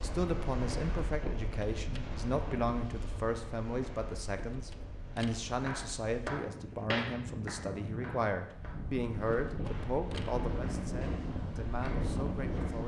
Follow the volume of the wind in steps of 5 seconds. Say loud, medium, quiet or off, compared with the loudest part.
medium, medium, loud.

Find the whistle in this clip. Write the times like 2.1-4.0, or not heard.
not heard.